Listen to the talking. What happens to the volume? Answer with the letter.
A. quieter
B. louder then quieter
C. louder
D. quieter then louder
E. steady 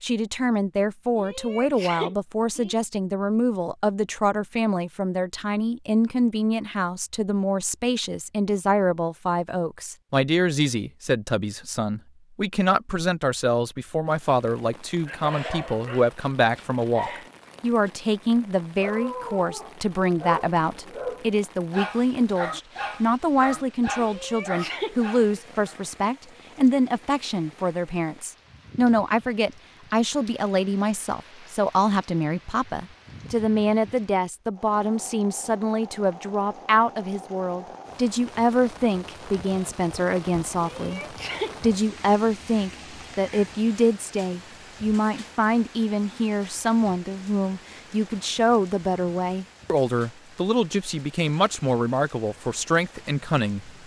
E.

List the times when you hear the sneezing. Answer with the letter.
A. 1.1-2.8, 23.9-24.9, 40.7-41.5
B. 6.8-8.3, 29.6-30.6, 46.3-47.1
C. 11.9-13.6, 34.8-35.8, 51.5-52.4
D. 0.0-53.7
A.